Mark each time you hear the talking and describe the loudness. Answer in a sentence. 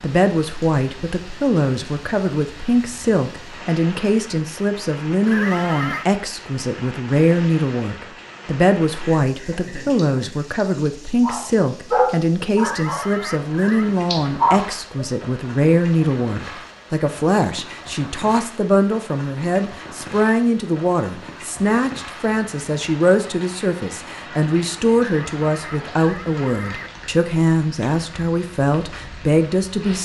You can hear the talking from 0.0 to 30.0 s, at a steady volume.